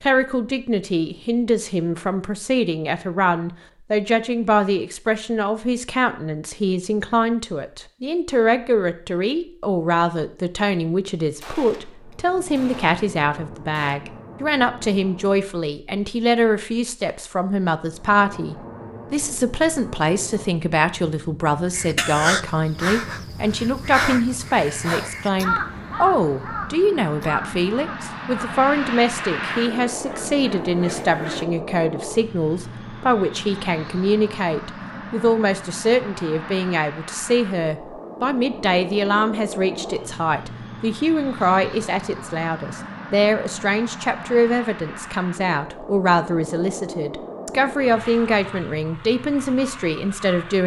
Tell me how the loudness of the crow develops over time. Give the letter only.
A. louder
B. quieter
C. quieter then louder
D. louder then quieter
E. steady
B.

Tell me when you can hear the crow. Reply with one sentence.
You can hear the crow from 21.7 to 31.4 s.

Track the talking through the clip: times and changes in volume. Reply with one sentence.
You can hear the talking from 0.0 to 50.6 s, at a steady volume.